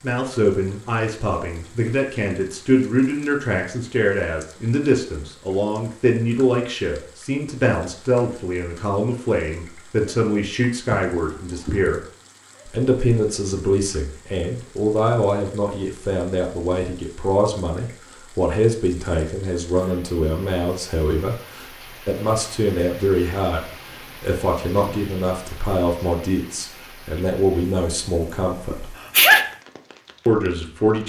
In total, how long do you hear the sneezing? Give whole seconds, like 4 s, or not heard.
2 s.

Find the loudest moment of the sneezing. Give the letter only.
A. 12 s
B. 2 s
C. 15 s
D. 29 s
D.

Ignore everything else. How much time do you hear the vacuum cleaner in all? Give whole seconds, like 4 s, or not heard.
not heard.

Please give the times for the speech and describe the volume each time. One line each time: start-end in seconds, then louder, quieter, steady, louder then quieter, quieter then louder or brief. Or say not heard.
0.0-12.0 steady
12.7-28.9 steady
30.2-31.0 brief.